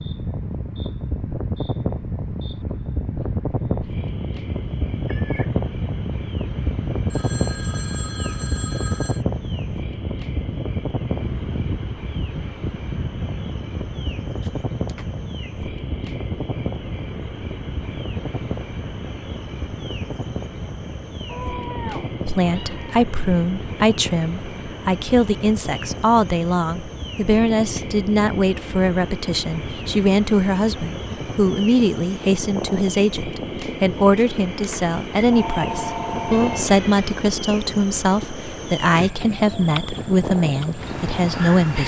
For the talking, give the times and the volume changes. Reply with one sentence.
You can hear the talking from 22.2 to 41.8 s, at a steady volume.